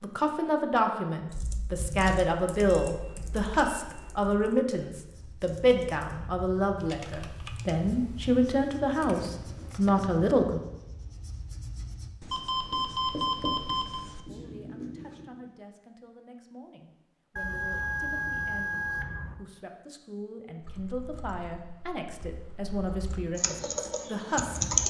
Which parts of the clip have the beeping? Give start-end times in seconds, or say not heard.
2.6-4.3, 12.3-14.1, 17.4-19.4.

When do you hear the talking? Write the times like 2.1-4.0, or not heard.
0.0-10.6, 14.2-24.8.